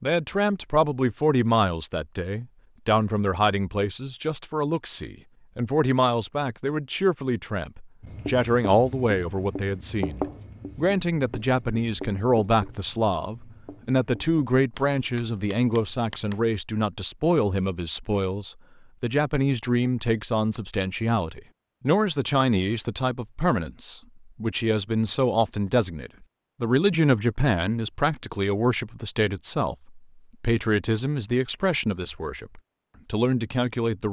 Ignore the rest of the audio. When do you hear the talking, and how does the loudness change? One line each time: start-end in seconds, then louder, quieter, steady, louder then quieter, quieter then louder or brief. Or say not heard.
0.0-34.0 steady.